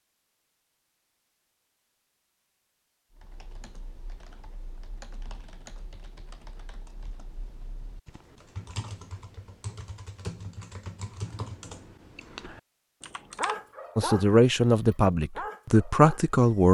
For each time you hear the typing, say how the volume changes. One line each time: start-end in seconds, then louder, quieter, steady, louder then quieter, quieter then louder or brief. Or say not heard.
3.1-13.6 louder.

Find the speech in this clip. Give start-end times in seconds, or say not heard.
13.9-16.6.